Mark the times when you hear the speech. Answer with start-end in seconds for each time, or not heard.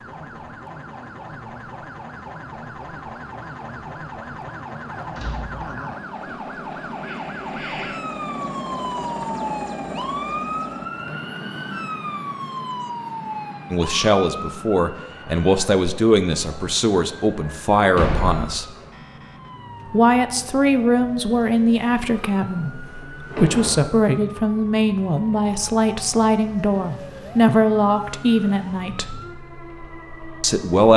13.7-18.8, 19.9-29.2, 30.4-30.9.